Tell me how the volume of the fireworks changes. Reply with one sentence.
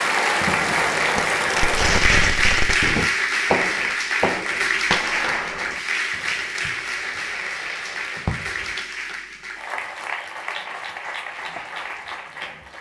The volume of the fireworks goes down.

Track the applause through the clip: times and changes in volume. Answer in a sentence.
You can hear the applause from 0.0 to 12.7 s, getting quieter.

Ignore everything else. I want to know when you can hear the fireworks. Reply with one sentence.
You can hear the fireworks from 0.3 to 8.8 s.